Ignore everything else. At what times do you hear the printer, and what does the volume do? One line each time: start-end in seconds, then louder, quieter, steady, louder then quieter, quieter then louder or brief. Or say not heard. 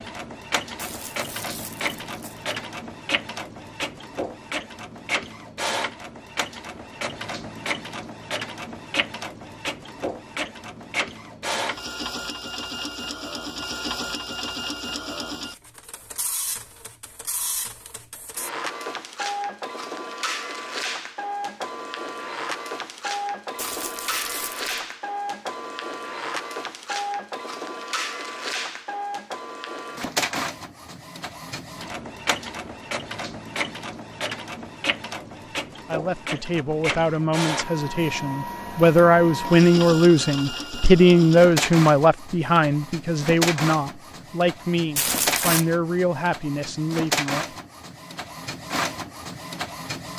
0.0-50.1 steady.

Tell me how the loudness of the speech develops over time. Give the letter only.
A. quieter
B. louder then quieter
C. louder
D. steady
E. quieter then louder
B.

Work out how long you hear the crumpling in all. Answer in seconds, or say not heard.
4 s.